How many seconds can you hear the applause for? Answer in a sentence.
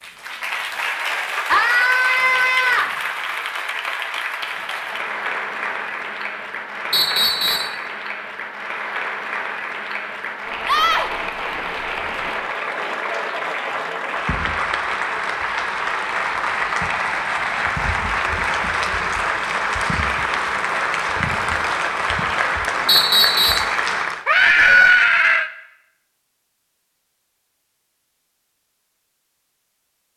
The applause can be heard for 24 seconds in total.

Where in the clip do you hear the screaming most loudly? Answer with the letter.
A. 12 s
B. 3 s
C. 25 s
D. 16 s
C.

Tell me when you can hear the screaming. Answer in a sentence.
You can hear the screaming from 1.5 to 3.0 s, from 10.7 to 11.1 s and from 24.2 to 25.5 s.